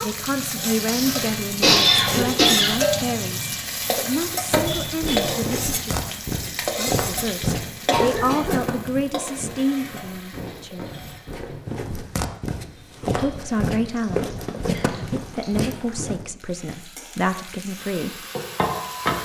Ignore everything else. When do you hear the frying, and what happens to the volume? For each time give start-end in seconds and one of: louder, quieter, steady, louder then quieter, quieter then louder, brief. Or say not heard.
0.0-19.2 quieter then louder.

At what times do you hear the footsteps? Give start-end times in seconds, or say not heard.
4.2-16.3.